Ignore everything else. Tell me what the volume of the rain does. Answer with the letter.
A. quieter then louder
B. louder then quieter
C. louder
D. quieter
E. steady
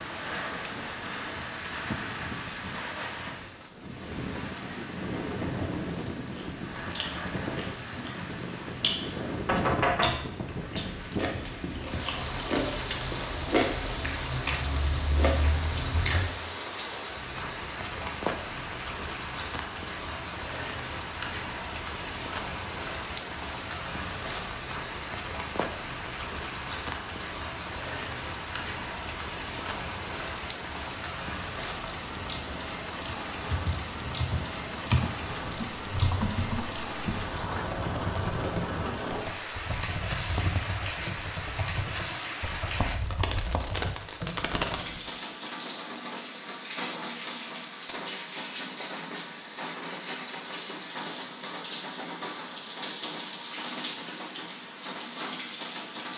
E.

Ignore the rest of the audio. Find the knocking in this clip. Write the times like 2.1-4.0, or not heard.
9.4-10.2.